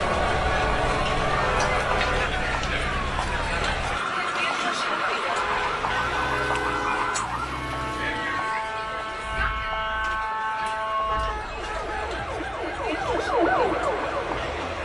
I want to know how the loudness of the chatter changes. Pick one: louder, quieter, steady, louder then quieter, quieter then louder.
quieter.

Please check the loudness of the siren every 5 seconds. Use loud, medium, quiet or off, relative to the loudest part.
medium, loud, loud.